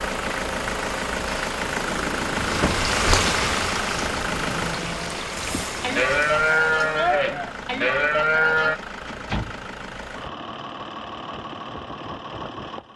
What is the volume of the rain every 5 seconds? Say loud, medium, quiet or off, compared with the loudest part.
loud, medium, off.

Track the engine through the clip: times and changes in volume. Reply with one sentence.
The engine can be heard from 0.0 to 12.9 s, getting quieter.